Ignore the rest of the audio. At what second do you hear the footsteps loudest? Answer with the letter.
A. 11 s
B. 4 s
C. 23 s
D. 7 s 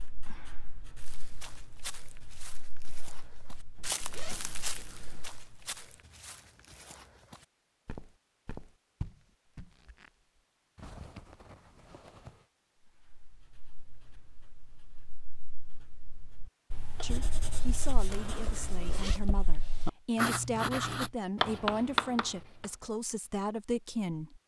B.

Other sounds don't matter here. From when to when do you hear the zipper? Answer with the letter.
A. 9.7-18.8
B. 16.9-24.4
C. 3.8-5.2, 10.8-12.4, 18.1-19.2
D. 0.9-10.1
C.